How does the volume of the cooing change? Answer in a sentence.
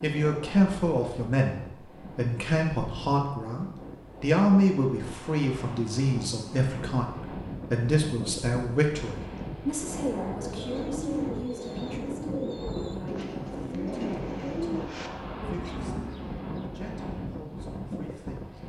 The volume of the cooing goes down.